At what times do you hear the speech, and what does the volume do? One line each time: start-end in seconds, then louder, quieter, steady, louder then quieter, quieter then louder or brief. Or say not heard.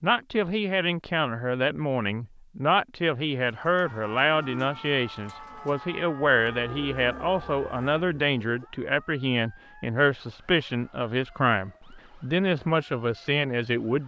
0.0-14.0 steady.